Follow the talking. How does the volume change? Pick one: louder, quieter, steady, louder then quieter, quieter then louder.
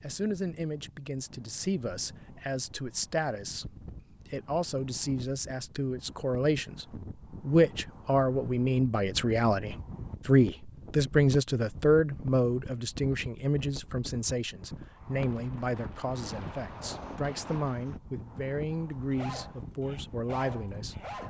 louder then quieter.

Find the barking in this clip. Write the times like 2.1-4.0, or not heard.
18.7-21.2.